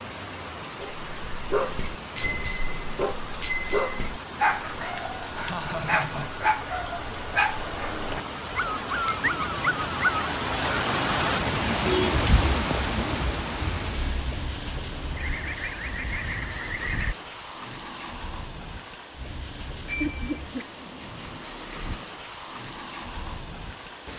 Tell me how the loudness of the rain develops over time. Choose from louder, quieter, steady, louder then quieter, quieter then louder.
louder then quieter.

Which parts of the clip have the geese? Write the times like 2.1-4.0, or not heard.
15.2-17.1.